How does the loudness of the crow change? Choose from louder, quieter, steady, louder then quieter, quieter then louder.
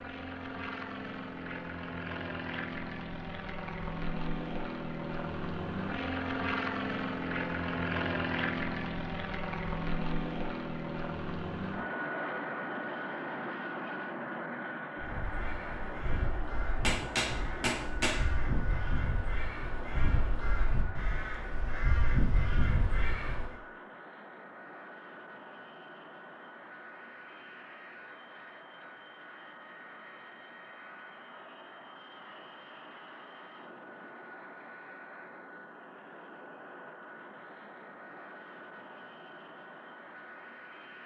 louder.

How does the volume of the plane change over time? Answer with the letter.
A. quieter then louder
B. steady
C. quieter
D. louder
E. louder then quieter
C.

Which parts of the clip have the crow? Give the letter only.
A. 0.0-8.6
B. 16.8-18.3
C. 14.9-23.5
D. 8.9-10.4
C.